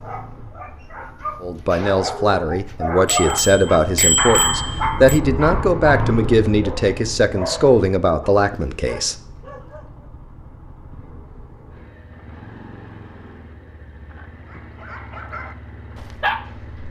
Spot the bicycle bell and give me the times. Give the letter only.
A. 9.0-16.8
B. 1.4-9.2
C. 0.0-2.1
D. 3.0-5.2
D.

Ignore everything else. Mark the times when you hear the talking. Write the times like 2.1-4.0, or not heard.
1.4-9.2.